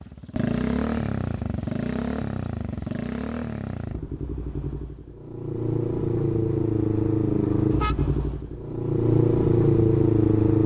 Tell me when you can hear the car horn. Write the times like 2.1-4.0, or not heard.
7.7-8.4.